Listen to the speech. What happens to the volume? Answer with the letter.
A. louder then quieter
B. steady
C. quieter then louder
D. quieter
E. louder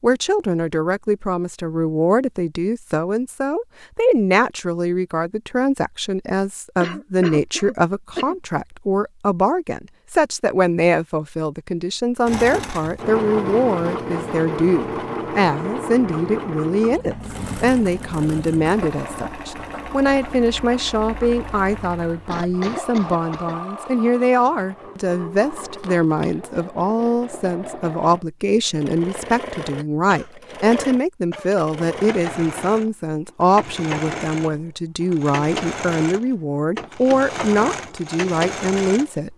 B.